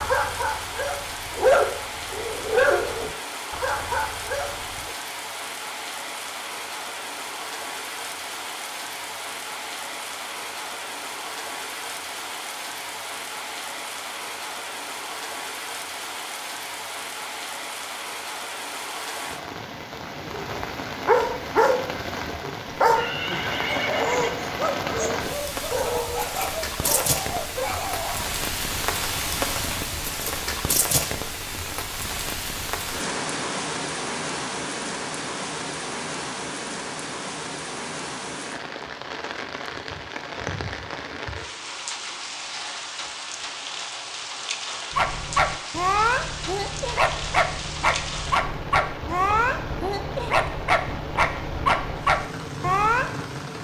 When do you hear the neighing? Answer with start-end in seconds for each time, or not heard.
22.8-24.4.